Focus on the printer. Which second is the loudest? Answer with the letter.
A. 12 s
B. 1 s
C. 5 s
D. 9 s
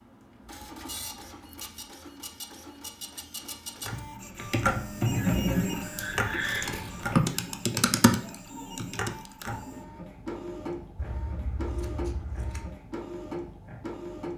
C.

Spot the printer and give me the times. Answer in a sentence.
You can hear the printer from 0.0 to 14.3 s.